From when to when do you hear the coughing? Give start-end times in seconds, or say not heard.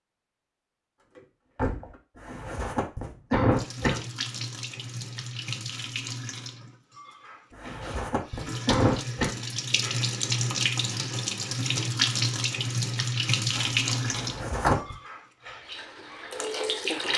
2.1-4.0, 7.5-9.3, 14.1-14.9.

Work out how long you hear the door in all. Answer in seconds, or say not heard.
2 s.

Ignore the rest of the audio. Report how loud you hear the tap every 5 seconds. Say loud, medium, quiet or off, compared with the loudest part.
medium, medium, loud, loud.